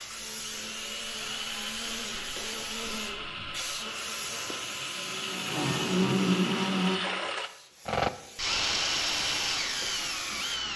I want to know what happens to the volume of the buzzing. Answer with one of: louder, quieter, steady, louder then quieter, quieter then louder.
louder.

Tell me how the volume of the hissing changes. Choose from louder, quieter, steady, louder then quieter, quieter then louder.
quieter then louder.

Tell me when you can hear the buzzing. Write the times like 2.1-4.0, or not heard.
0.0-7.0.